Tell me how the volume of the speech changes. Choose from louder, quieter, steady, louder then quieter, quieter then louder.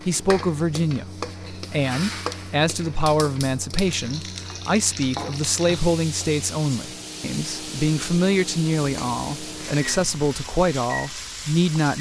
steady.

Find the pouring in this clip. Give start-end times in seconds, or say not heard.
not heard.